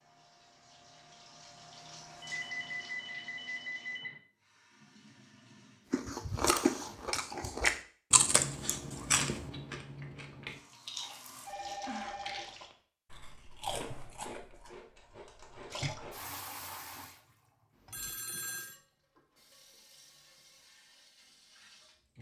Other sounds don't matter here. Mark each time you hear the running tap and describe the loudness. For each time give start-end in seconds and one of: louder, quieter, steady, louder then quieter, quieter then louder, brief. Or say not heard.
0.0-7.1 louder then quieter
10.4-12.7 brief
15.7-22.1 quieter.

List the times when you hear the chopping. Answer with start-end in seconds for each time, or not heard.
not heard.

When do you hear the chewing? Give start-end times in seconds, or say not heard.
5.9-16.2.